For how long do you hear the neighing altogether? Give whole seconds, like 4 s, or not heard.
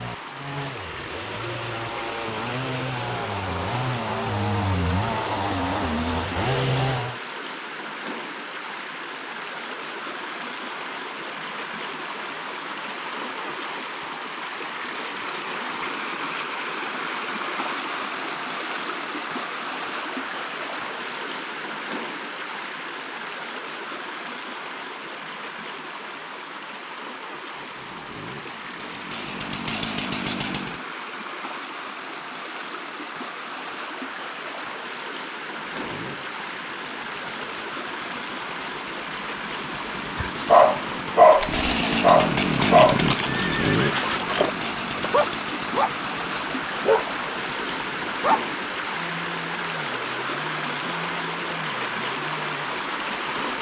2 s.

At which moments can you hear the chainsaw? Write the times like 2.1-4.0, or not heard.
0.0-7.2, 27.5-30.8, 35.5-53.5.